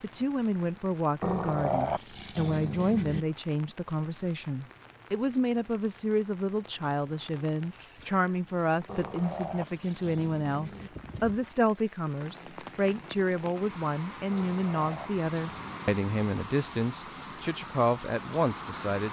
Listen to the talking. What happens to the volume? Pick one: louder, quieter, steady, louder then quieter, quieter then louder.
steady.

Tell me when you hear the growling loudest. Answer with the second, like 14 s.
2 s.